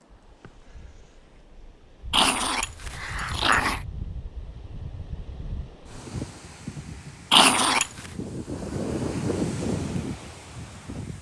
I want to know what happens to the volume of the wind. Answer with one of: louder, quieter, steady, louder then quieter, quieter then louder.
louder.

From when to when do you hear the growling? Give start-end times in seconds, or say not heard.
2.1-3.8, 7.3-8.1.